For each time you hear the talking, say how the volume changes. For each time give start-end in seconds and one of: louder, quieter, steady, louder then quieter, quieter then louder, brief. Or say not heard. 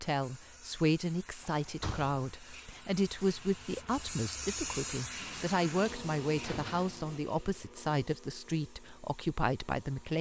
0.0-10.1 steady.